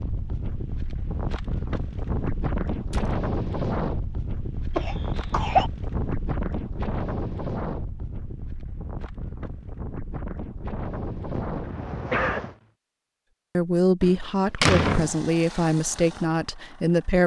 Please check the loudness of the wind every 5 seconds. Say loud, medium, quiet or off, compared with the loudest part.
loud, loud, loud, off.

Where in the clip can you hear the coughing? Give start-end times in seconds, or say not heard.
4.8-5.7, 11.3-12.5.